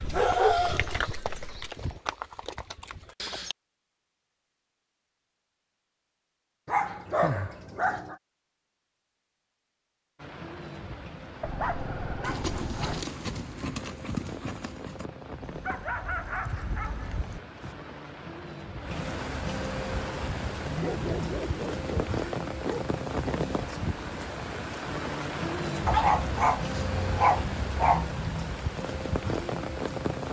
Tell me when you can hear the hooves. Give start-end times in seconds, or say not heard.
0.0-3.5, 12.2-17.8.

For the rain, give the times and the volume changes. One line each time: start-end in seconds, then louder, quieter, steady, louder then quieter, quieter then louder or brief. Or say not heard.
10.2-30.2 louder.